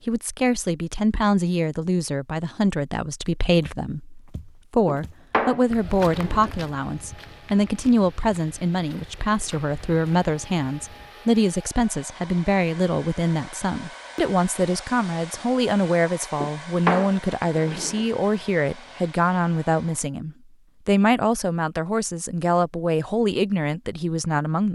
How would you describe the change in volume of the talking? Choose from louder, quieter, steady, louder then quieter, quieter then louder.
steady.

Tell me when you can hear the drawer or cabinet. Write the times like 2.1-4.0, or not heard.
4.8-6.5, 16.4-18.1.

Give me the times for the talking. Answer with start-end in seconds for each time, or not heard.
0.1-24.7.